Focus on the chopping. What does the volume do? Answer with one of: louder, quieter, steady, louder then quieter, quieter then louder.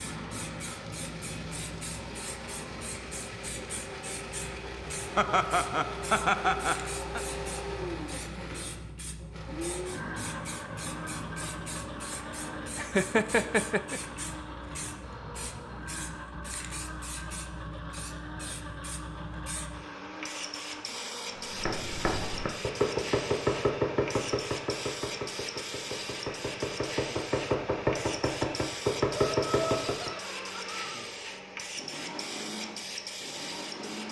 quieter then louder.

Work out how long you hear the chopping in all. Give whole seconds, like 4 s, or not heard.
9 s.